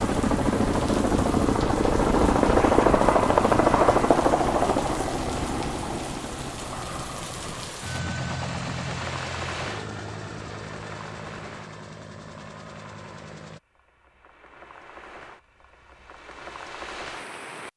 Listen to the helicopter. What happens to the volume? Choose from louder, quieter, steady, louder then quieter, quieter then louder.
quieter.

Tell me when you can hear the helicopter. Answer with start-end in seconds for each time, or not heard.
0.0-13.6.